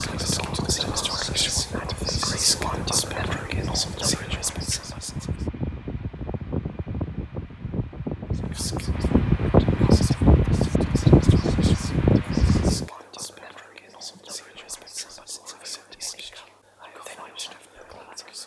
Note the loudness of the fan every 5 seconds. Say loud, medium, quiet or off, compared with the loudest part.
quiet, medium, loud, off.